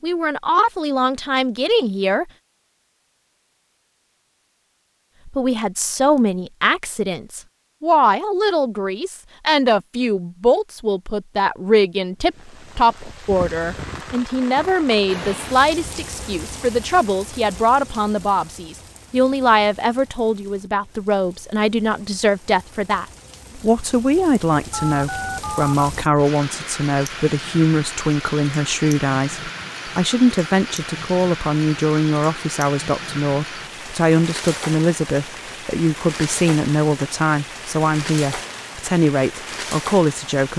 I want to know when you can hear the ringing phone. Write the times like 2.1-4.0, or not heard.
24.7-25.8.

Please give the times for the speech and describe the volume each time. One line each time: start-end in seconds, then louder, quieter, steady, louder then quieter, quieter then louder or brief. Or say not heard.
0.0-2.2 brief
5.2-40.5 steady.